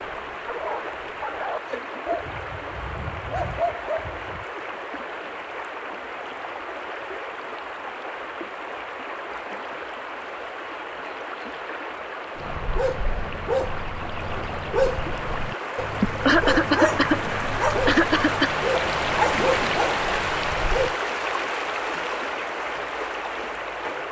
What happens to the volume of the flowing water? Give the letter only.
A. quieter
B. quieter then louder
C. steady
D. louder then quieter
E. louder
E.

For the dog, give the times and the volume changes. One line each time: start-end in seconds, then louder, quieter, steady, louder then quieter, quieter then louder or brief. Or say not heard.
0.0-4.5 quieter then louder
12.3-20.9 steady.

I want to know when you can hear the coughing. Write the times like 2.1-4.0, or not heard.
16.0-18.6.